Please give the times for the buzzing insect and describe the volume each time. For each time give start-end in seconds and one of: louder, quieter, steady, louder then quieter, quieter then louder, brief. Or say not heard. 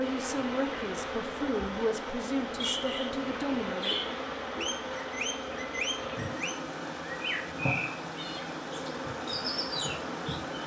0.0-10.6 steady.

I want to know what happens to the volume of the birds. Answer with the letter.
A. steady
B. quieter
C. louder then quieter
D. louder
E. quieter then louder
A.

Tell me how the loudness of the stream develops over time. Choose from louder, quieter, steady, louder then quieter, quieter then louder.
steady.